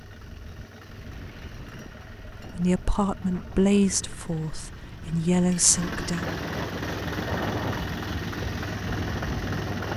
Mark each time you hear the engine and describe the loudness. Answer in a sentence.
You can hear the engine from 0.0 to 9.9 s, getting louder.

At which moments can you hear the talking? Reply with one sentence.
You can hear the talking from 2.5 to 6.3 s.